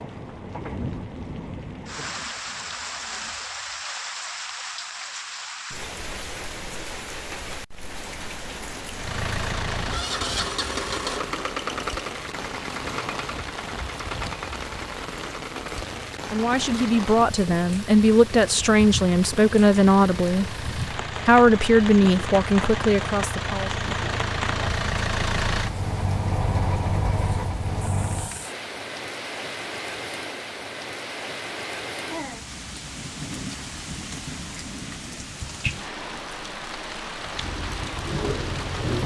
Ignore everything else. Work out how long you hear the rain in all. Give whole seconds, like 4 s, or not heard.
39 s.